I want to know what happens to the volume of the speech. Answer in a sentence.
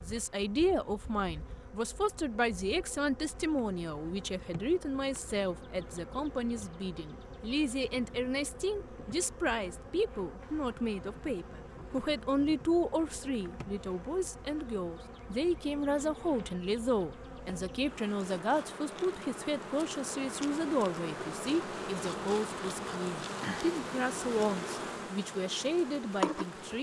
The volume of the speech stays about the same.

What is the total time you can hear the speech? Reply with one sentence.
The speech can be heard for 27 seconds in total.